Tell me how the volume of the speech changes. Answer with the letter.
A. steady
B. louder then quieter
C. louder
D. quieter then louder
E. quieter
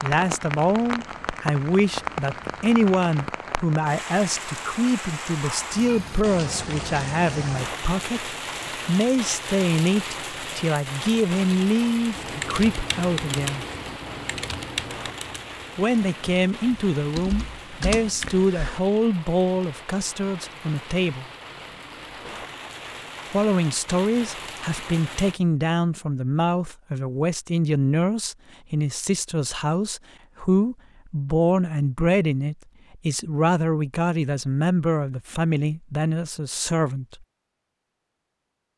A.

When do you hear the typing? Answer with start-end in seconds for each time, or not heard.
12.2-18.8.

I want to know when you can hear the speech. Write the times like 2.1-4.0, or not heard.
0.0-13.7, 15.8-21.2, 23.3-37.2.